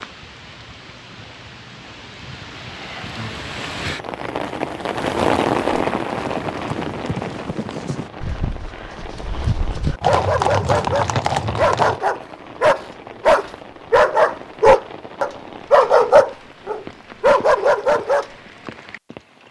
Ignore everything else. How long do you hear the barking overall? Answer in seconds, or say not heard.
8 s.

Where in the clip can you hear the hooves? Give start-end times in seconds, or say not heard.
5.7-12.0.